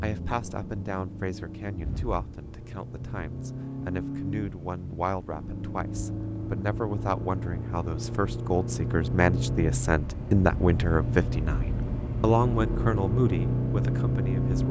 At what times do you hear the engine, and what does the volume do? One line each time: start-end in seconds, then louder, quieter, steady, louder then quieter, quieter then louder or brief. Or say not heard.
0.0-14.6 louder.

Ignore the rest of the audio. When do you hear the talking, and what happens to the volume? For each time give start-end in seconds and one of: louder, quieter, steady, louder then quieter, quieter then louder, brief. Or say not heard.
0.0-14.6 louder.